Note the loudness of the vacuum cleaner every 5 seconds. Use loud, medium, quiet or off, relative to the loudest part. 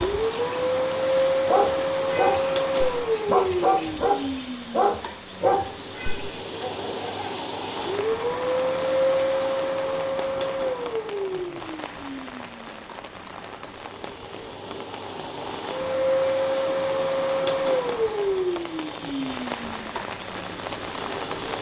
loud, loud, medium, loud, quiet.